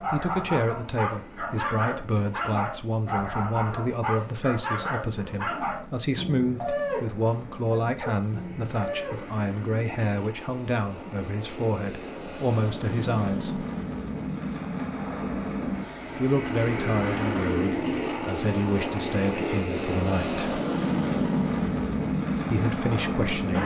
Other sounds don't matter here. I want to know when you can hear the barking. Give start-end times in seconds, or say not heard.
0.0-9.3.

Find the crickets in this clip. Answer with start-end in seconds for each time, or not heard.
not heard.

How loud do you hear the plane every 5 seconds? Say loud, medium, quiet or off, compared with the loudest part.
quiet, quiet, medium, loud, loud.